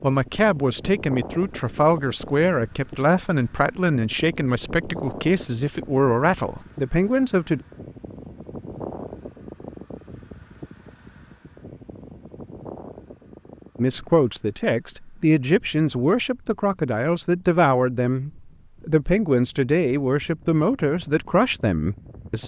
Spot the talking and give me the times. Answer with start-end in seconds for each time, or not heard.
0.0-7.6, 13.8-22.4.